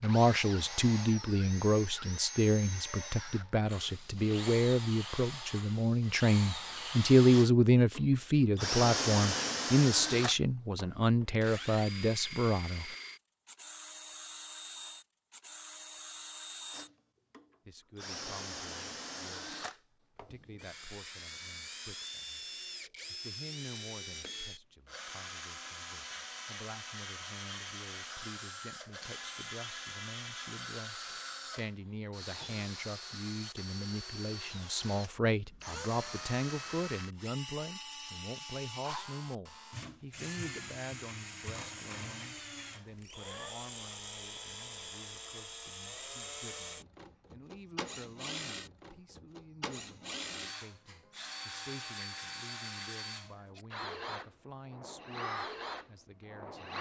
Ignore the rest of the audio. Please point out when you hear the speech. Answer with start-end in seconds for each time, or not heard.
0.0-12.8, 17.6-22.4, 23.1-56.7.